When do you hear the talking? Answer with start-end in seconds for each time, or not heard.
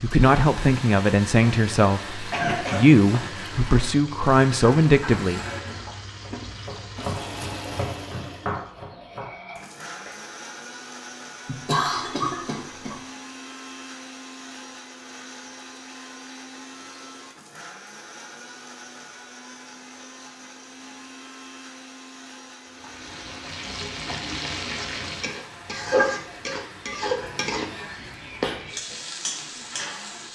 0.0-5.4.